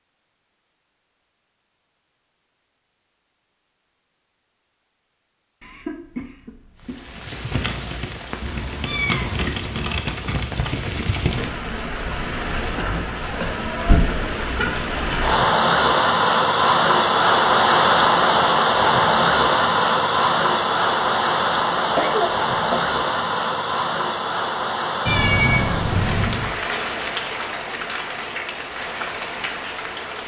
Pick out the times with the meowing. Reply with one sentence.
You can hear the meowing from 8.4 to 10.0 s and from 25.1 to 26.6 s.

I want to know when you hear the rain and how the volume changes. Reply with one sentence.
You can hear the rain from 6.8 to 30.2 s, getting louder then quieter.